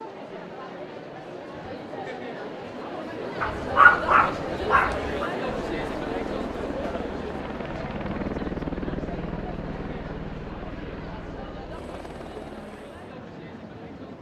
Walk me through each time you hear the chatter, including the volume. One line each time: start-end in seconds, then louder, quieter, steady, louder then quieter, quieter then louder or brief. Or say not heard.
0.0-14.1 louder then quieter.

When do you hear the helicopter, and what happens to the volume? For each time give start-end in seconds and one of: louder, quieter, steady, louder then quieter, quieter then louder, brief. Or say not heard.
5.6-14.1 louder then quieter.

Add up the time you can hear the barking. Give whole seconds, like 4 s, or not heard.
2 s.